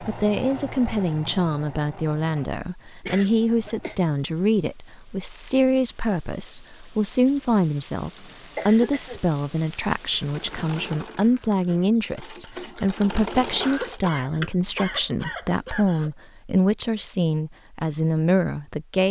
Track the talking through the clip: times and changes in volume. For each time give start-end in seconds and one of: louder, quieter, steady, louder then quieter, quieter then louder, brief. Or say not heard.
0.0-19.0 steady.